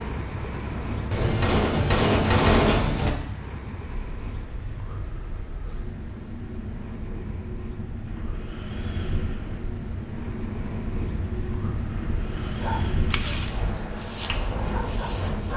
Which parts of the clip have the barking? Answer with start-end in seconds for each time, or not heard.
12.6-15.5.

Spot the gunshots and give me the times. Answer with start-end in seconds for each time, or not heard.
1.1-3.1.